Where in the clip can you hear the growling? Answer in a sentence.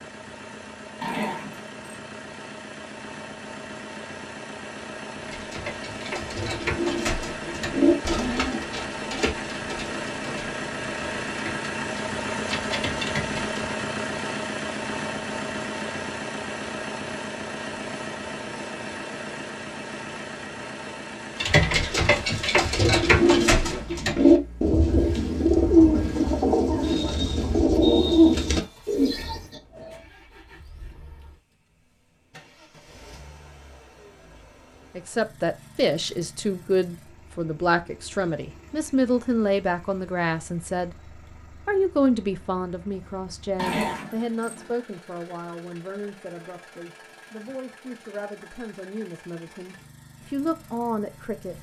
The growling can be heard from 1.0 to 2.0 s and from 43.5 to 44.7 s.